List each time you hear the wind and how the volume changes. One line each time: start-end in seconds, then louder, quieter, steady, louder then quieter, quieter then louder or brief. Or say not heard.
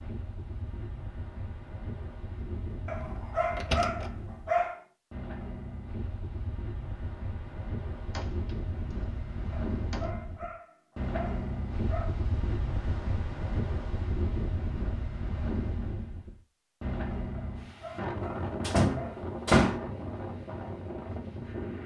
0.0-21.8 louder.